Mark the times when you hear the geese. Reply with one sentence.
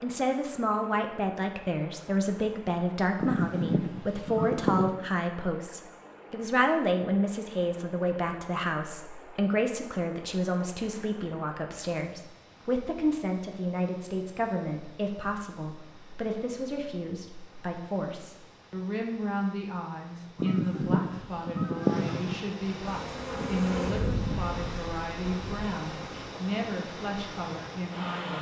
The geese can be heard from 3.2 to 4.9 s and from 20.4 to 22.4 s.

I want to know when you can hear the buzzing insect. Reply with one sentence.
You can hear the buzzing insect from 22.9 to 26.2 s.